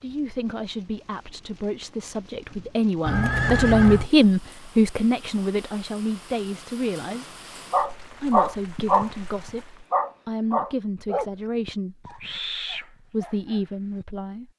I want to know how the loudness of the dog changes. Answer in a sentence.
The volume of the dog goes down.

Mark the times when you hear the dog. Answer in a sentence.
The dog can be heard from 7.7 to 14.1 s.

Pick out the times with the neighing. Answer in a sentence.
The neighing can be heard from 3.0 to 4.1 s.